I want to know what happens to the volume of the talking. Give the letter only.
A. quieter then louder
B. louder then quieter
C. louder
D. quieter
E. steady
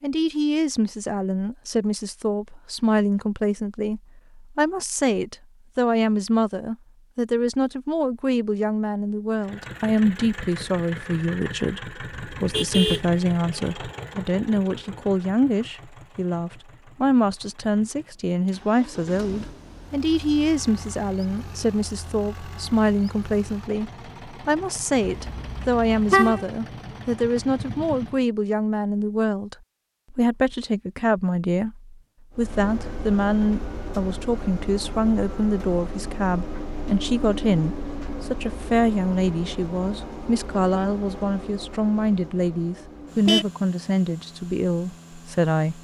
E.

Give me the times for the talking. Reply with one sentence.
The talking can be heard from 0.0 to 45.7 s.